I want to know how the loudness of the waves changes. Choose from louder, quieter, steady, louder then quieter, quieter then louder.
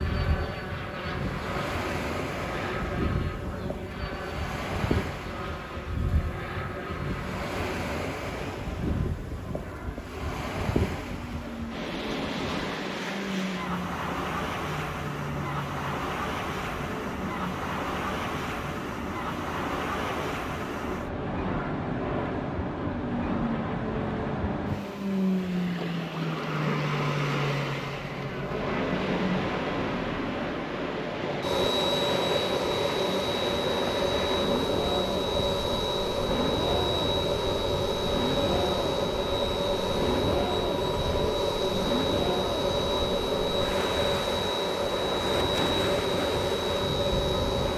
steady.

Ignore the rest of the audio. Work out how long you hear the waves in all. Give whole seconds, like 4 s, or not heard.
48 s.